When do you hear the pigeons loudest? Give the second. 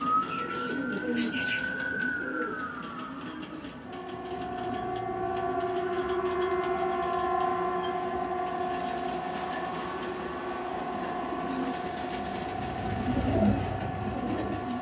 13 s.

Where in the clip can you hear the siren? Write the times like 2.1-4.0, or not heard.
0.0-14.7.